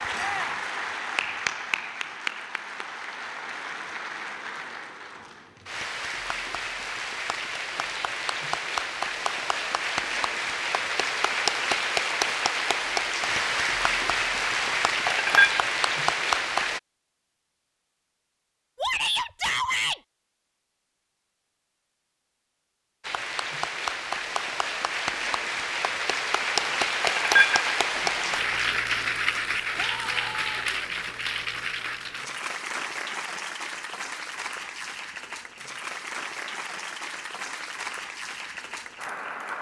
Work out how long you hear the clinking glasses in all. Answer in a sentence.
The clinking glasses can be heard for 3 seconds in total.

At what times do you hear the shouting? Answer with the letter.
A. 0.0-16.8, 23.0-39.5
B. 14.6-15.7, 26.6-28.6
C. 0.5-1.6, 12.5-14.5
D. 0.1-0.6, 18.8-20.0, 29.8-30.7
D.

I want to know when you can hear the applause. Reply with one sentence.
The applause can be heard from 0.0 to 16.8 s and from 23.0 to 39.5 s.